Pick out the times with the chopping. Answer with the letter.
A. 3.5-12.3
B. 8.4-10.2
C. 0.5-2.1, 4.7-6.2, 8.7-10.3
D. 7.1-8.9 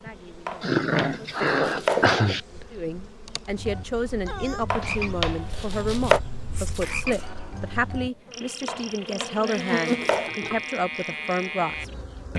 C.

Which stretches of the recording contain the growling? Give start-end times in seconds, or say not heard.
0.6-2.4.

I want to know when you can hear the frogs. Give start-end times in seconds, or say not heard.
3.5-12.3.